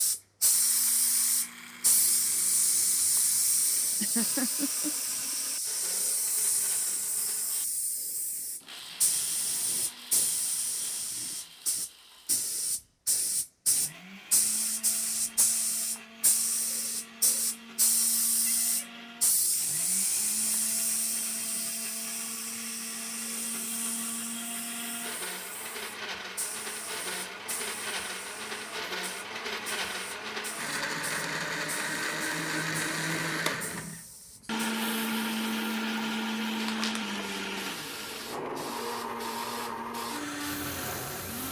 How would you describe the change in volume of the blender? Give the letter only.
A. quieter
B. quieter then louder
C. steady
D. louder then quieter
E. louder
E.